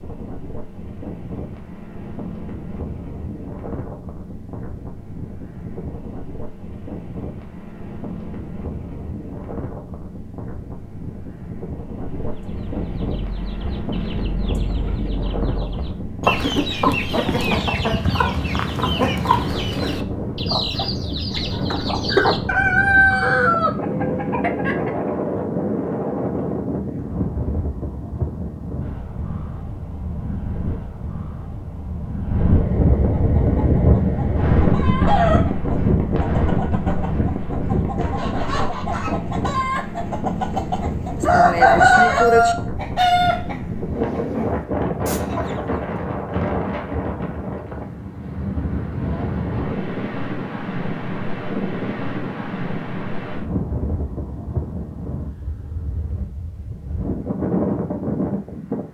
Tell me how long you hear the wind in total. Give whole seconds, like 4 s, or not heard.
59 s.